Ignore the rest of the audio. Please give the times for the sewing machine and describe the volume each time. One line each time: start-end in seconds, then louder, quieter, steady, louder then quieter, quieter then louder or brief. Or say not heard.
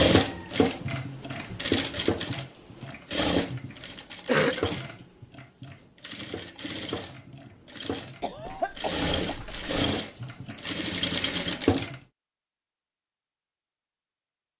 0.0-12.0 quieter then louder.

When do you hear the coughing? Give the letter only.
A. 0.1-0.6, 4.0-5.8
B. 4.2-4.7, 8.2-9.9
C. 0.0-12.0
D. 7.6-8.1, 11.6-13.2
B.